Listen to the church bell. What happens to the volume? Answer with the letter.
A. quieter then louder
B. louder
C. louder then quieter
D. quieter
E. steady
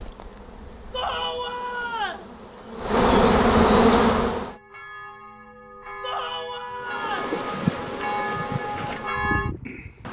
B.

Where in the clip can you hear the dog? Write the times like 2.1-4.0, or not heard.
not heard.